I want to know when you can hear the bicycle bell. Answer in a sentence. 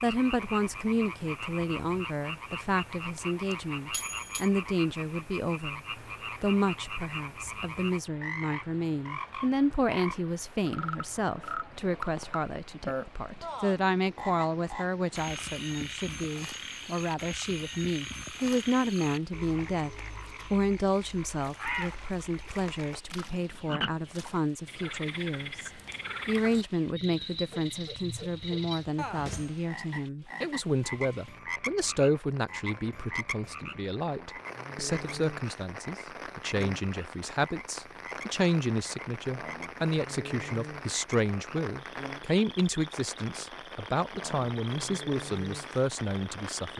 You can hear the bicycle bell from 3.1 to 4.5 s.